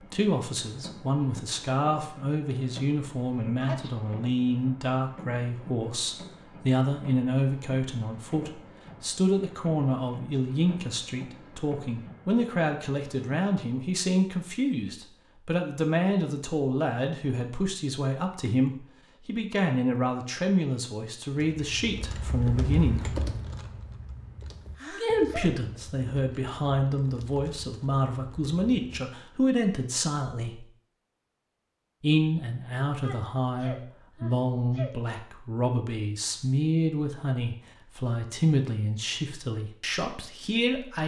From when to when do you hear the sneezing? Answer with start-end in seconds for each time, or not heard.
3.5-4.1, 24.8-25.5, 33.0-34.9.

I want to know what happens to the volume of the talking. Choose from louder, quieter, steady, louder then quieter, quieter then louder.
steady.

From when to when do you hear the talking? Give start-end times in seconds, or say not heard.
0.1-23.2, 24.9-30.6, 32.0-41.0.